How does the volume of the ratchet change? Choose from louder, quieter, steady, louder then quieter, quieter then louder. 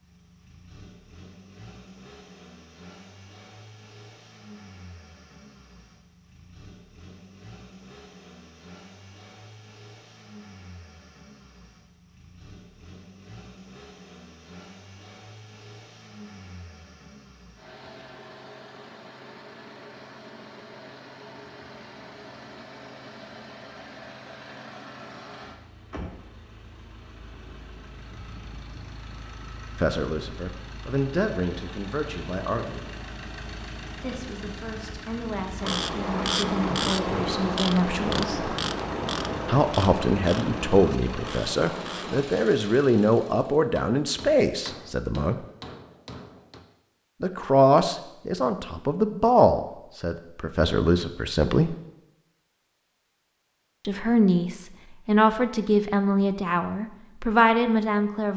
quieter.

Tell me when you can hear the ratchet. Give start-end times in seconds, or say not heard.
35.6-42.2.